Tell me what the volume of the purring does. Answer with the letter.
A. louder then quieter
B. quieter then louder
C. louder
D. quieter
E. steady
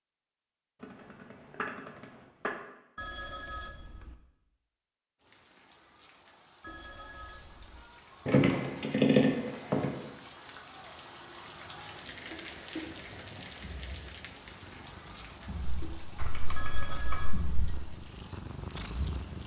C.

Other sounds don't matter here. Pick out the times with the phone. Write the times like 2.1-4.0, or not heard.
3.0-4.2, 6.6-7.8, 16.6-17.4.